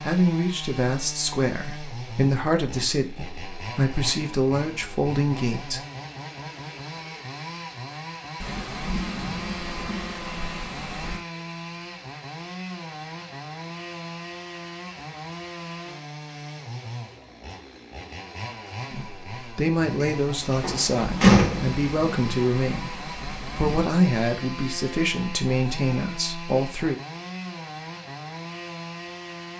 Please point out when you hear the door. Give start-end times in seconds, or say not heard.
20.0-21.8.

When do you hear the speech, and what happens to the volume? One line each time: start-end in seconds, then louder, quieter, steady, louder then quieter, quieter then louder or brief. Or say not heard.
0.0-5.8 steady
18.9-27.0 steady.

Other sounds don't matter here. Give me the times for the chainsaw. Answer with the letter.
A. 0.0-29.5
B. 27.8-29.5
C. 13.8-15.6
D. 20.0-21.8
A.